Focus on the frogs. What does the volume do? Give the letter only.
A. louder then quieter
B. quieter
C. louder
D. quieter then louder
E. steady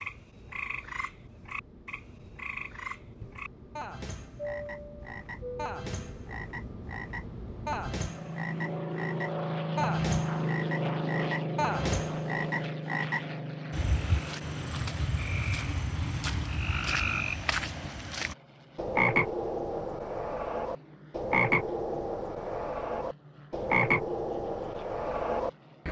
C.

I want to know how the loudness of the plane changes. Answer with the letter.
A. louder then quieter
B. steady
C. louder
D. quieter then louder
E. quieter
A.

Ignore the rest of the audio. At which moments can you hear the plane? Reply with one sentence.
The plane can be heard from 0.1 to 25.8 s.